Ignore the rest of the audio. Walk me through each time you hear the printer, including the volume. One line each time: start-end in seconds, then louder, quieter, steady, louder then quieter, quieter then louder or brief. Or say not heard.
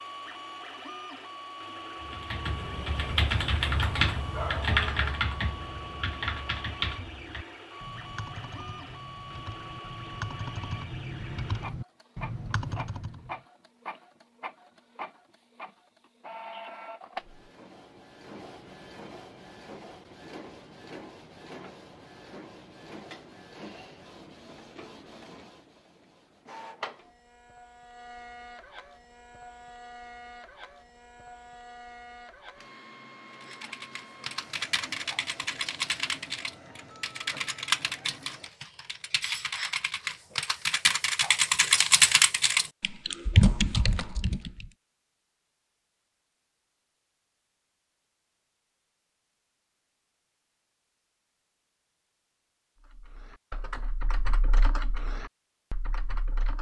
0.0-38.5 quieter.